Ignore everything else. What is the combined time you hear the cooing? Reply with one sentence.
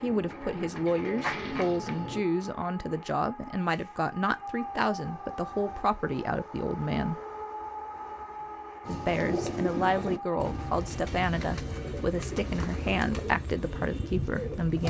You can hear the cooing for 8 seconds altogether.